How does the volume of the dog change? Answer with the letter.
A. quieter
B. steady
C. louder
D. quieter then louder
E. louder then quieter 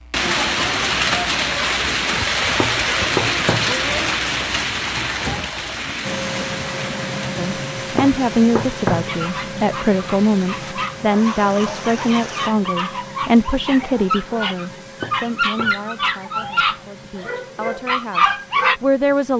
C.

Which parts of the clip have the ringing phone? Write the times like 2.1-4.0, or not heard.
not heard.